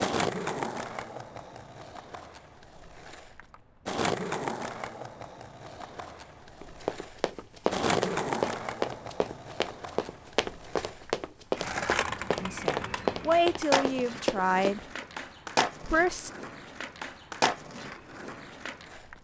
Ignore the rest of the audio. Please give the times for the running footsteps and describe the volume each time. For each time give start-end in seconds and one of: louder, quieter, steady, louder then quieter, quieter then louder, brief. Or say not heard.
6.6-15.1 steady.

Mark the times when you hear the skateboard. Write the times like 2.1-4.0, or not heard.
0.0-19.2.